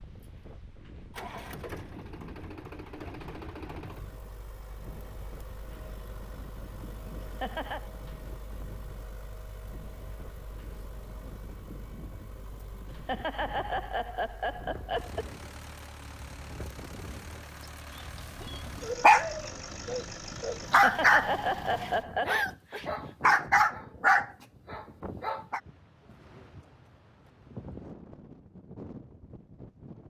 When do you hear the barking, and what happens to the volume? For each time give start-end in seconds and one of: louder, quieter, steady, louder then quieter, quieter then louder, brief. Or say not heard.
18.4-25.6 quieter then louder.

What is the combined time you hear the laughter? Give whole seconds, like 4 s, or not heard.
5 s.